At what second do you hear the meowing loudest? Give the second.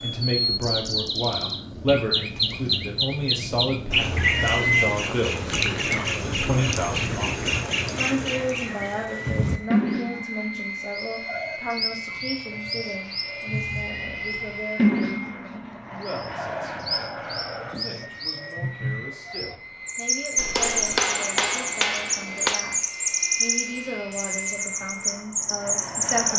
5 s.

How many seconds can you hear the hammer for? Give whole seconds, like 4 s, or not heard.
2 s.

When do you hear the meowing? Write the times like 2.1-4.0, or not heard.
4.0-5.0, 13.6-14.6.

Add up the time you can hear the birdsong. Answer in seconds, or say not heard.
26 s.